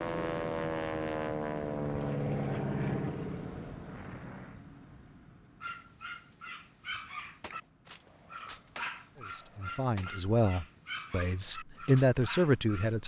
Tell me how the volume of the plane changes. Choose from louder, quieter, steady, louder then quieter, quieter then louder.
quieter.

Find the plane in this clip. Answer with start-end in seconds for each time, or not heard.
0.0-4.7.